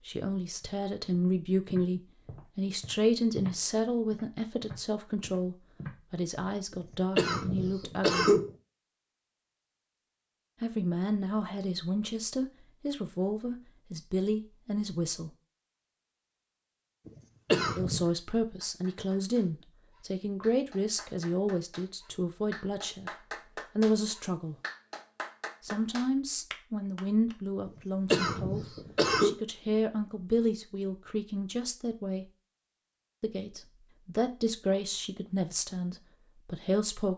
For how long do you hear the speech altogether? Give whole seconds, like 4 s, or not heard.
30 s.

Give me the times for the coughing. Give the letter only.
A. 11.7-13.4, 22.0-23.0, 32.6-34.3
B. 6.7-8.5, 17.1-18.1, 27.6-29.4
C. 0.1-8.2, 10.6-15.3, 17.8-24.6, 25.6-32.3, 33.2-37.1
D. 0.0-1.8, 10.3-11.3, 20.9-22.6
B.